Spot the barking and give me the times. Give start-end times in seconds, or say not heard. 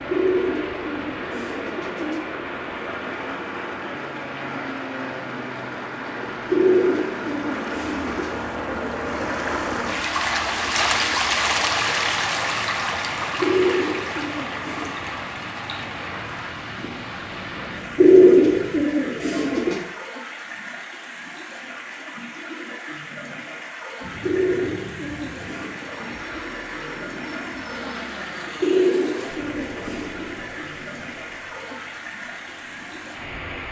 not heard.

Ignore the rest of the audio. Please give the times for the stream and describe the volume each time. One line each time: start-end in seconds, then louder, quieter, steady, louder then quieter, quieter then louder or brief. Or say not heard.
0.0-33.6 louder then quieter.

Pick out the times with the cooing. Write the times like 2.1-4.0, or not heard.
0.1-2.2, 6.5-8.3, 13.4-14.9, 17.9-19.8, 24.2-25.8, 28.6-30.2.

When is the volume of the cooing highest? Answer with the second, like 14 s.
18 s.